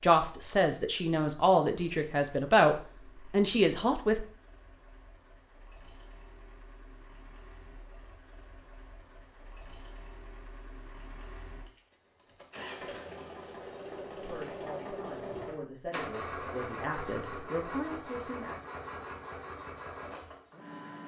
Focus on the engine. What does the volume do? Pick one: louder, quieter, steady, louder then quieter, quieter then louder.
louder.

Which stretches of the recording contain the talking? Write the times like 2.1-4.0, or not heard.
0.0-4.2, 14.2-18.6.